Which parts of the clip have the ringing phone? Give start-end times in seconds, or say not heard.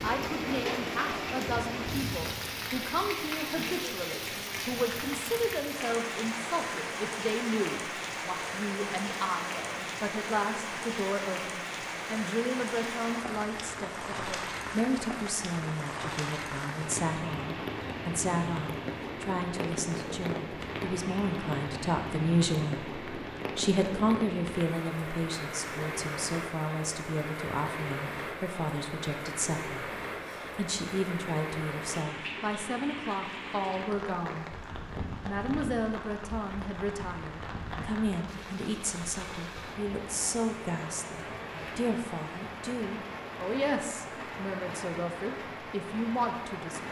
not heard.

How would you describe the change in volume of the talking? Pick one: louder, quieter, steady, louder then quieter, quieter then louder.
steady.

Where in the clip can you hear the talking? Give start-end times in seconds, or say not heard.
0.0-34.5, 35.2-46.8.